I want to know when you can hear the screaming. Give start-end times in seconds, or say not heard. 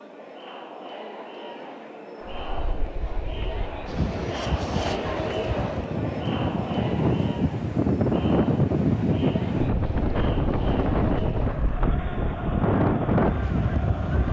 not heard.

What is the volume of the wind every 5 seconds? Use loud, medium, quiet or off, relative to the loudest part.
medium, loud, loud.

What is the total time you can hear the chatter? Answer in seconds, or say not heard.
14 s.